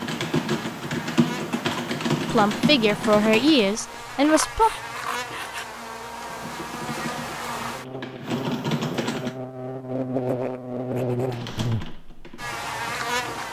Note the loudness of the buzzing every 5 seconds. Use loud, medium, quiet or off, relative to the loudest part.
medium, medium, loud.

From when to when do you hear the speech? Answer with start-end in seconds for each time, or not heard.
2.3-4.7.